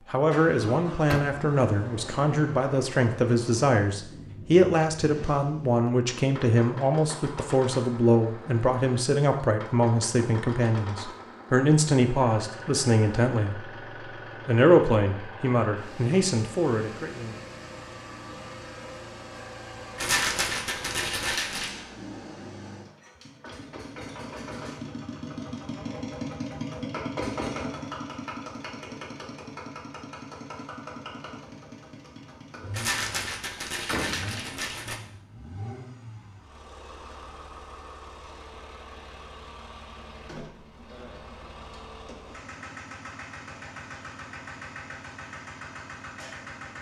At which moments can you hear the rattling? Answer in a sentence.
You can hear the rattling from 19.9 to 21.7 s and from 32.7 to 35.0 s.